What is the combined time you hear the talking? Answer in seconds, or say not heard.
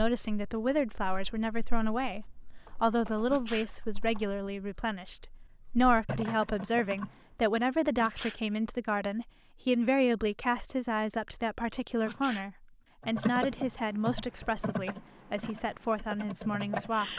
17 s.